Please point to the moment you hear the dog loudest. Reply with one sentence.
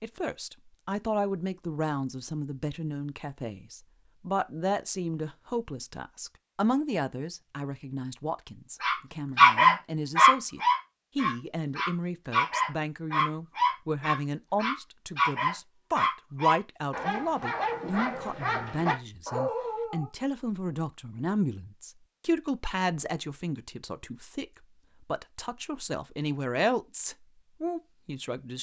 The loudest moment of the dog is at 10 seconds.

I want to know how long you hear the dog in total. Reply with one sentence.
You can hear the dog for 11 seconds altogether.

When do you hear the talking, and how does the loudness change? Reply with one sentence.
You can hear the talking from 0.0 to 28.5 s, at a steady volume.